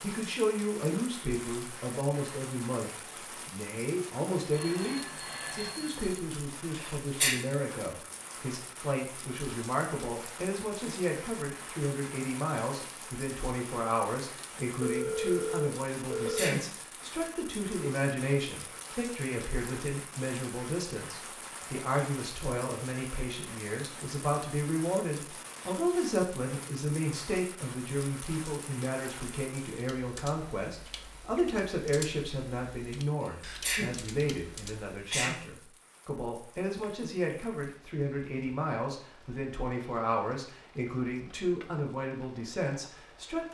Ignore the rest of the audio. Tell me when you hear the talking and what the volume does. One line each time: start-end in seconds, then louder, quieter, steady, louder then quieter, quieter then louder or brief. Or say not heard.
0.0-43.4 steady.